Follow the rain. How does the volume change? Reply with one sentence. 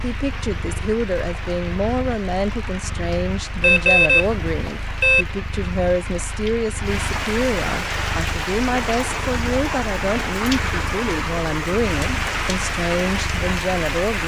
The loudness of the rain goes up.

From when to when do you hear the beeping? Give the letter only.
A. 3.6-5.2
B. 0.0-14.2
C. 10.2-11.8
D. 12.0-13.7
A.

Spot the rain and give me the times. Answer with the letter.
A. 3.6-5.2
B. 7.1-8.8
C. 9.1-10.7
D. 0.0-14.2
D.